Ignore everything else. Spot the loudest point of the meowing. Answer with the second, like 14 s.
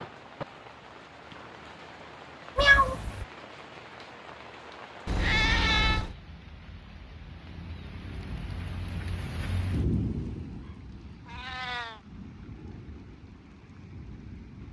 3 s.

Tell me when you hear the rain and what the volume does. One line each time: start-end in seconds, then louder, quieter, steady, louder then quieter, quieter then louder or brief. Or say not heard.
0.0-14.6 louder then quieter.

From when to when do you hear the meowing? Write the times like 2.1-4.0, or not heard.
2.5-3.2, 5.0-6.2, 11.2-12.0.